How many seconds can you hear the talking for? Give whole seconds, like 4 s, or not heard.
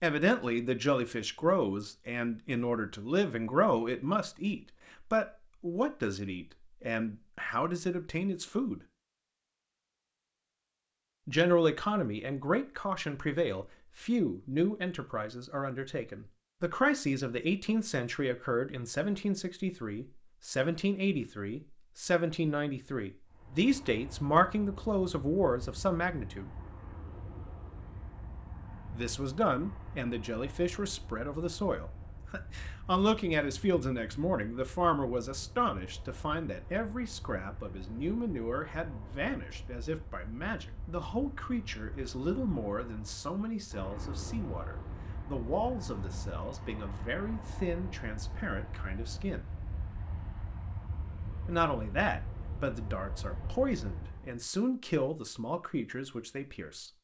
50 s.